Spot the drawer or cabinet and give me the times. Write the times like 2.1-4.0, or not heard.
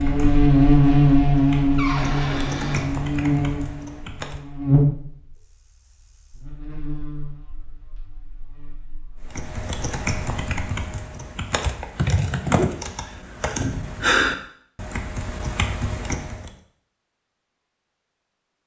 1.8-2.9, 13.6-14.1.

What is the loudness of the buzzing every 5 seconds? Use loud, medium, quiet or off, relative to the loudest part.
loud, quiet, off, off.